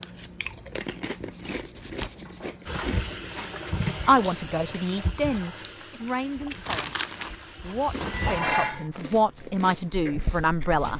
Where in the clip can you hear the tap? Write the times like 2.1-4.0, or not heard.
2.6-8.4.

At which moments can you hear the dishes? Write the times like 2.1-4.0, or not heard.
2.2-3.5, 8.0-8.8.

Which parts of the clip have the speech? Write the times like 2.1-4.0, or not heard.
4.0-10.9.